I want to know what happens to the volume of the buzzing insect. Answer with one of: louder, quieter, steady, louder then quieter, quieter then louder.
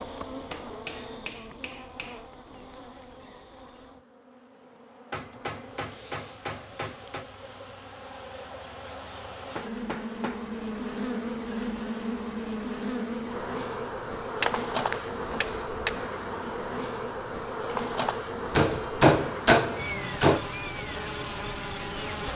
louder.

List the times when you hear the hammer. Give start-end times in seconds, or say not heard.
0.5-2.2, 5.1-7.2, 9.6-10.5, 14.4-16.1, 18.6-20.4.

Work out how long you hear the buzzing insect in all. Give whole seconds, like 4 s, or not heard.
22 s.